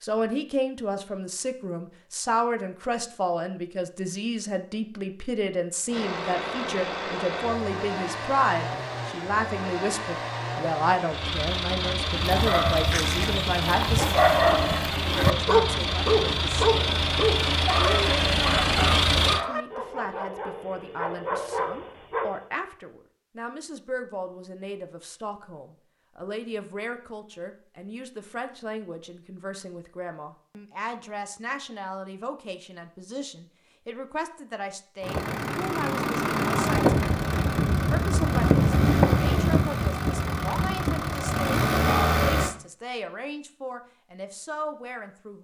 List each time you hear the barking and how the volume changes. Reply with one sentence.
You can hear the barking from 12.1 to 22.4 s, getting quieter.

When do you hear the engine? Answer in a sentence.
The engine can be heard from 5.8 to 19.4 s and from 35.0 to 42.5 s.